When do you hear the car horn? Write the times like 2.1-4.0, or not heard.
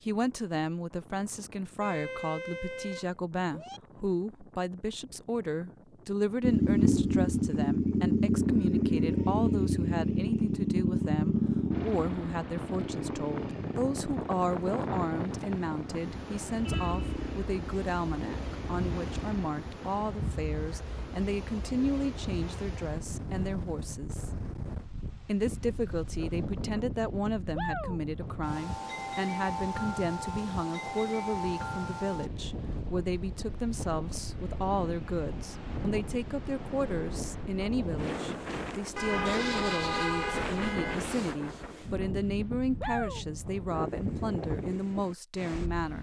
1.8-3.8, 16.6-17.1, 39.0-41.0.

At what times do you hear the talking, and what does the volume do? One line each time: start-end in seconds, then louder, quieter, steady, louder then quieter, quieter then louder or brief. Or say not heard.
0.0-24.3 steady
25.2-45.9 steady.